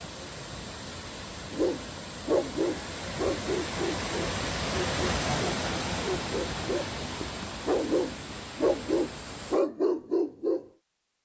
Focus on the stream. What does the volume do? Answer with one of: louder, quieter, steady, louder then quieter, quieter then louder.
louder then quieter.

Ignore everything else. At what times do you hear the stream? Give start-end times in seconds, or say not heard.
0.0-9.6.